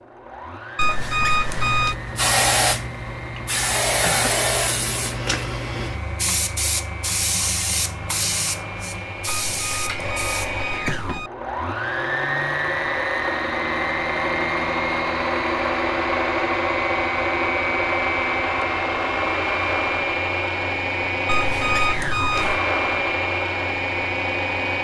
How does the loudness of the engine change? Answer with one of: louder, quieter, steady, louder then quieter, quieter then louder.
louder.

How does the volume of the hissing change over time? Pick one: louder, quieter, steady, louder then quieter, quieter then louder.
quieter.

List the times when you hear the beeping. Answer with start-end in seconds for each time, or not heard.
0.8-1.9, 9.2-11.3, 21.2-22.6.